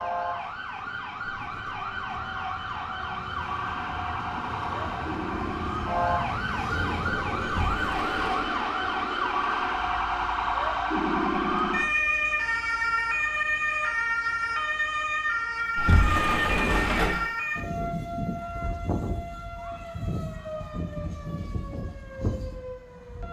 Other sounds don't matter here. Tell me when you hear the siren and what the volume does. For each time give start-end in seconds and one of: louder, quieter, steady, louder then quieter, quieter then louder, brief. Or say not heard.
0.0-23.2 louder then quieter.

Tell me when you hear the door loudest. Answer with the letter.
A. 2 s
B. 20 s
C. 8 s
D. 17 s
D.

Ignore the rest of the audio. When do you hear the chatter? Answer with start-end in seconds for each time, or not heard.
not heard.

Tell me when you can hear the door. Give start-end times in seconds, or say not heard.
7.5-8.5, 15.8-17.3.